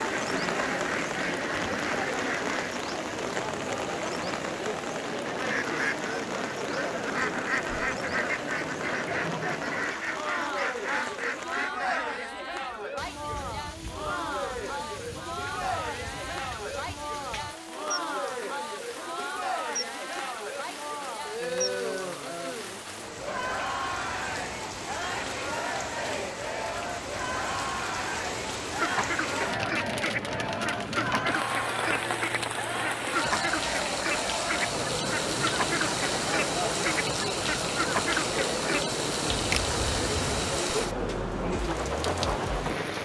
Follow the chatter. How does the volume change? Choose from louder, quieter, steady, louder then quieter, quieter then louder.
steady.